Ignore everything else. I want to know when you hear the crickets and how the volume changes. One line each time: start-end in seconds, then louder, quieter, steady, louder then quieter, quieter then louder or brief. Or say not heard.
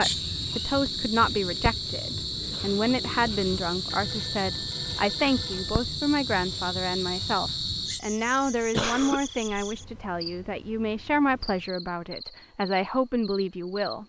0.0-14.0 quieter.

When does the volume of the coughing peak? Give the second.
9 s.